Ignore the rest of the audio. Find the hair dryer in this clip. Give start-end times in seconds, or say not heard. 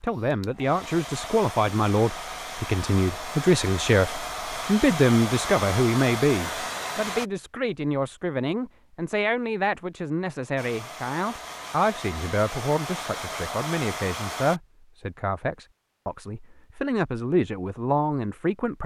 0.0-7.3, 10.6-14.6.